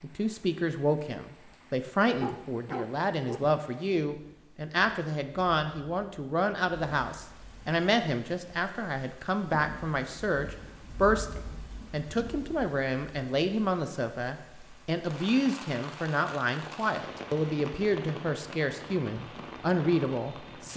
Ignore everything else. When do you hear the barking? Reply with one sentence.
The barking can be heard from 2.1 to 3.5 s.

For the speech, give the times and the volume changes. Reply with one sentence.
You can hear the speech from 0.0 to 20.7 s, at a steady volume.